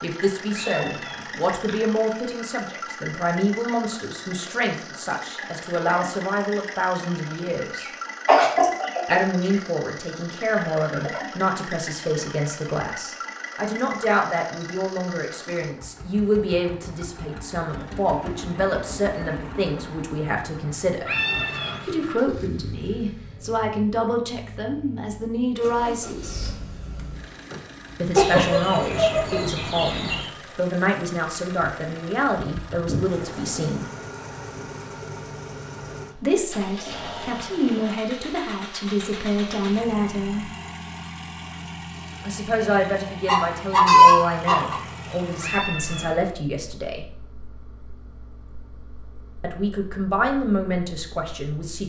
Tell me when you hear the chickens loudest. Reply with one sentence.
The volume of the chickens peaks at 44 seconds.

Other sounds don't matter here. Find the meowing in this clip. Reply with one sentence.
You can hear the meowing from 0.5 to 1.8 s, from 21.1 to 22.2 s and from 45.4 to 46.4 s.